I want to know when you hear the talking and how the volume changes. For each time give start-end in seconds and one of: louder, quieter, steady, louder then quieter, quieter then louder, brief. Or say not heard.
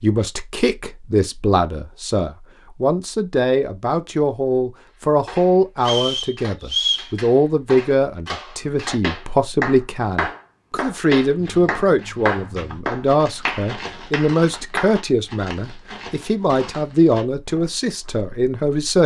0.0-19.0 steady.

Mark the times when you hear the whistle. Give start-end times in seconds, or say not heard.
5.8-7.1.